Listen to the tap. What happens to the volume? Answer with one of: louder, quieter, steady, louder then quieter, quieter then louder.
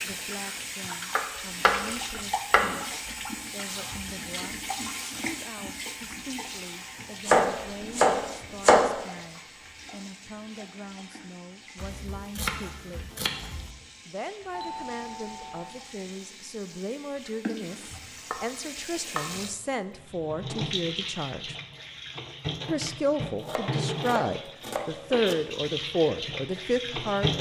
quieter then louder.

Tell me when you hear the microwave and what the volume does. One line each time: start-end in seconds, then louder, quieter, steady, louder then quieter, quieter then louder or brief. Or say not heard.
not heard.